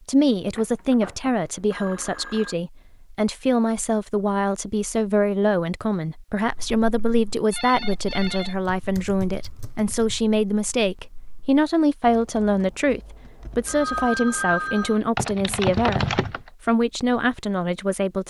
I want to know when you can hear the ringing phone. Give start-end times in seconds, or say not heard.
0.6-2.5, 7.5-8.6, 13.7-15.0.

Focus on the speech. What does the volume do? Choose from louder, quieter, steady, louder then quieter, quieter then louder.
steady.